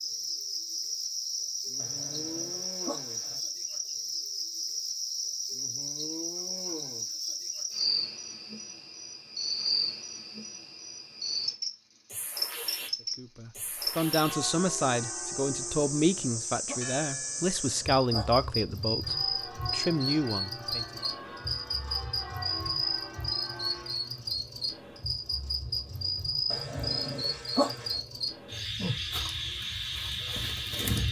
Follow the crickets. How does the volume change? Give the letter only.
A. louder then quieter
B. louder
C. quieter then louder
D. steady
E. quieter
D.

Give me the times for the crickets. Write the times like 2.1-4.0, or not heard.
0.0-31.0.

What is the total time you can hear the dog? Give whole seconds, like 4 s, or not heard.
6 s.